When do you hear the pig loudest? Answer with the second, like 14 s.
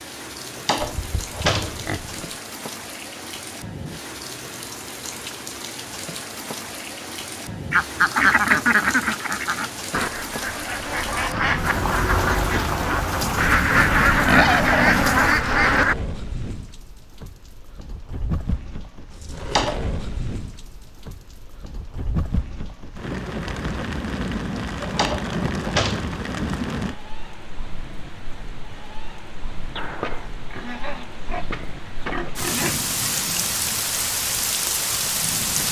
14 s.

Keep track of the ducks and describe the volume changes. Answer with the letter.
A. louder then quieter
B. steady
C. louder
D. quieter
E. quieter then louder
E.